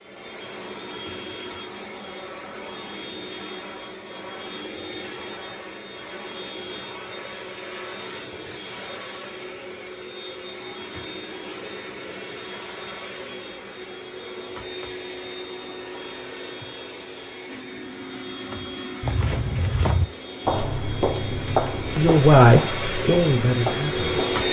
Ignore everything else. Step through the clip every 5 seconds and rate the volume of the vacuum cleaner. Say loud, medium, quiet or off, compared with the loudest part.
medium, medium, medium, medium, loud.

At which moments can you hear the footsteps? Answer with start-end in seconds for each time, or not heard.
19.0-24.4.